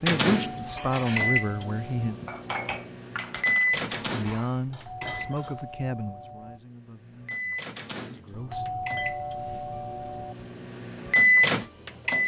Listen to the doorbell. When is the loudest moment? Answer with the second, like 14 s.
9 s.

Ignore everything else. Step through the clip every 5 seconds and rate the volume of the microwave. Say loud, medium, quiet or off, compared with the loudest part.
medium, quiet, loud.